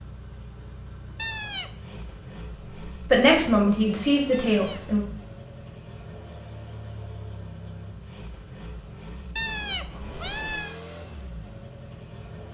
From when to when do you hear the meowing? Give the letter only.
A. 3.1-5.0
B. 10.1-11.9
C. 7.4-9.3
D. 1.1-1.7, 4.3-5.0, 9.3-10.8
D.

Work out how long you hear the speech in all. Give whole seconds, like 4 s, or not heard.
2 s.